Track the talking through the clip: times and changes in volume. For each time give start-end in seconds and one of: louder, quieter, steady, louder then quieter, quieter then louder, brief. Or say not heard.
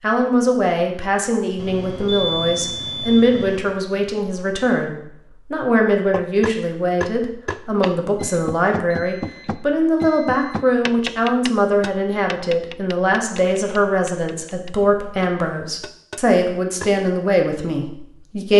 0.0-18.5 steady.